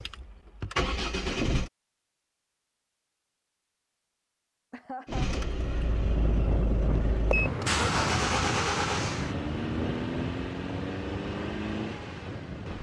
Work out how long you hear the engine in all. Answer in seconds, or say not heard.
9 s.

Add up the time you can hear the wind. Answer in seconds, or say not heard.
7 s.